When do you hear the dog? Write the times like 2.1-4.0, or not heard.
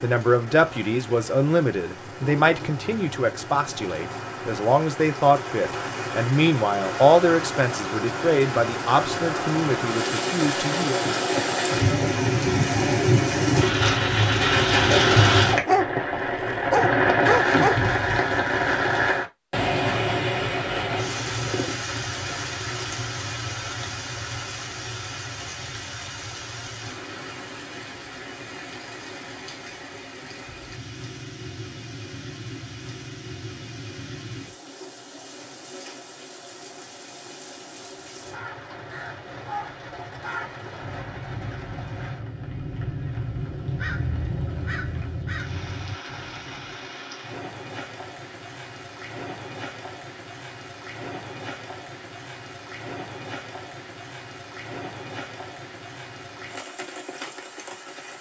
15.5-17.9.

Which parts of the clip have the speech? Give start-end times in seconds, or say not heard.
0.0-11.0.